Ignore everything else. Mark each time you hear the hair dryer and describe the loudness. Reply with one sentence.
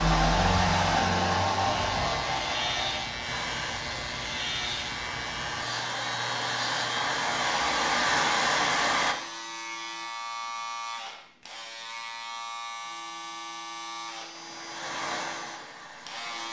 The hair dryer can be heard from 0.0 to 9.2 s, getting quieter then louder; and briefly from 14.3 to 16.4 s.